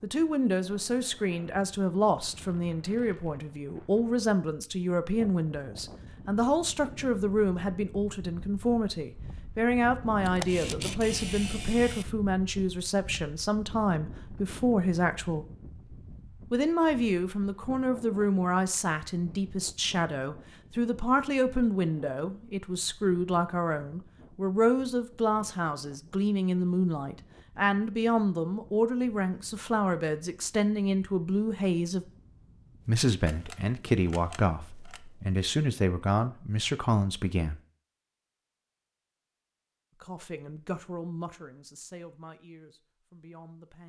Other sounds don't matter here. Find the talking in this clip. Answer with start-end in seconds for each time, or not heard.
0.0-15.4, 16.5-32.0, 32.9-37.6, 40.0-43.8.